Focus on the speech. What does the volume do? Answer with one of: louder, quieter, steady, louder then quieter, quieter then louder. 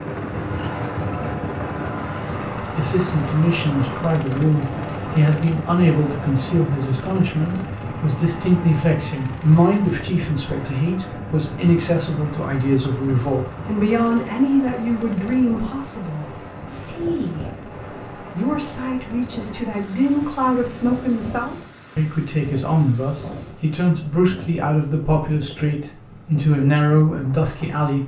steady.